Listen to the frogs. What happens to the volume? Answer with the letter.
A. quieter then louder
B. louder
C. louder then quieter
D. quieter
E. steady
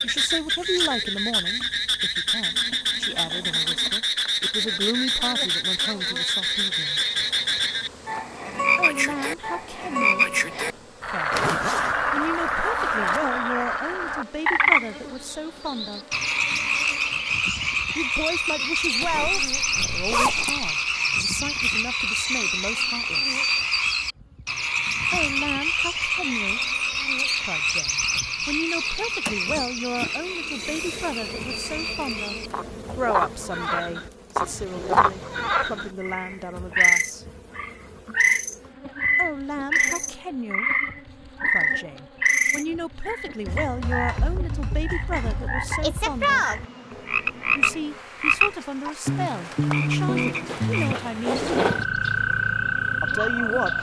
E.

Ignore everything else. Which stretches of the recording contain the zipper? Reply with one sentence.
You can hear the zipper from 11.3 to 13.2 s, from 19.0 to 20.7 s and from 50.5 to 51.9 s.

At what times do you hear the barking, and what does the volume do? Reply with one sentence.
You can't hear the barking here.